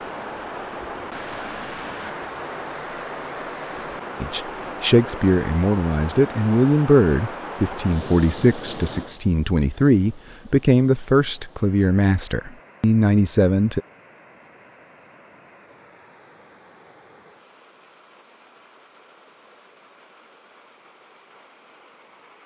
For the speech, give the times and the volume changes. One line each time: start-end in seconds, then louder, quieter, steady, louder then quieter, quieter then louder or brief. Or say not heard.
4.2-13.8 steady.